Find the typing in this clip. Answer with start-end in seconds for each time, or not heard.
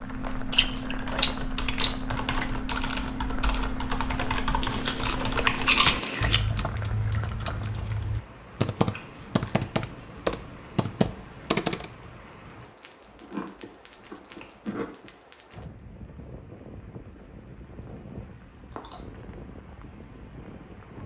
0.0-11.9.